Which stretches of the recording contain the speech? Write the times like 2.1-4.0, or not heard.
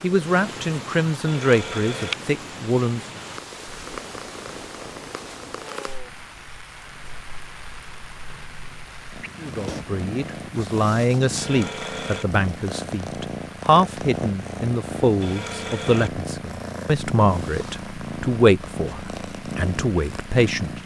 0.0-3.2, 9.4-20.8.